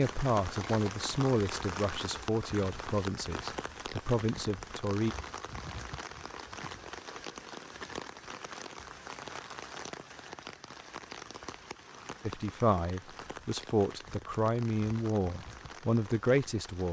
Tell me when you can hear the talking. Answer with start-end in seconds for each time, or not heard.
0.0-5.2, 12.2-16.8.